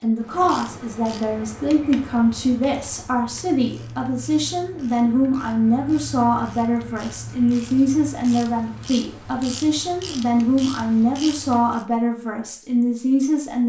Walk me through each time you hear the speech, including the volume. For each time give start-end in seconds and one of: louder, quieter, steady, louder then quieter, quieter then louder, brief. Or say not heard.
0.0-13.6 steady.